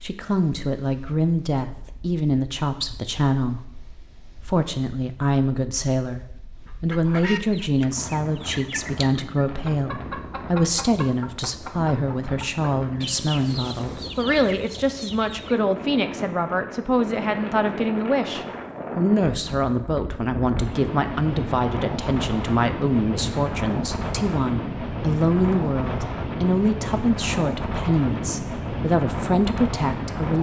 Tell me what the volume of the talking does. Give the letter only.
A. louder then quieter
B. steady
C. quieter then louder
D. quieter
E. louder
B.